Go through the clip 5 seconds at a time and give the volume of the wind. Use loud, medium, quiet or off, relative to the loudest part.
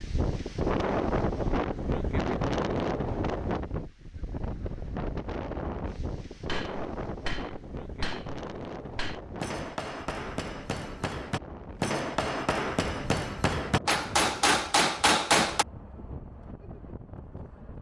loud, medium, quiet, quiet.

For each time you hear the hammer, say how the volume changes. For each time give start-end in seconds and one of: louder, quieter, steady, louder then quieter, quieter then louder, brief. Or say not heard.
6.3-15.7 louder.